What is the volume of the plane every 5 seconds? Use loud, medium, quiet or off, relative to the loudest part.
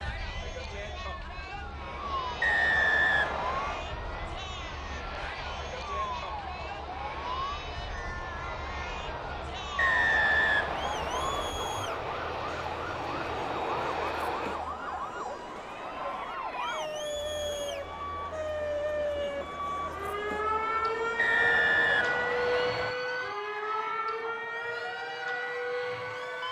medium, medium, loud, off, off, off.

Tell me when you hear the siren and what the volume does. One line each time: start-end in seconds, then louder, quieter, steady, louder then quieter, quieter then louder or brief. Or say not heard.
0.0-26.4 louder.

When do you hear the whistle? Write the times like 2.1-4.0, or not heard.
2.4-3.9, 9.8-11.5, 21.1-22.9.